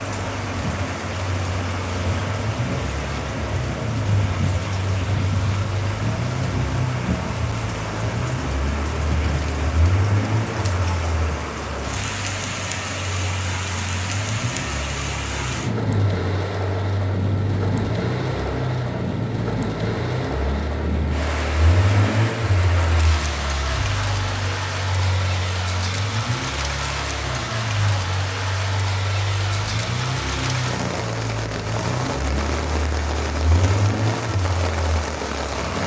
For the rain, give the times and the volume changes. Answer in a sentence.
The rain can be heard from 0.0 to 35.8 s, at a steady volume.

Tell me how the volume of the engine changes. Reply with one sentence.
The volume of the engine stays about the same.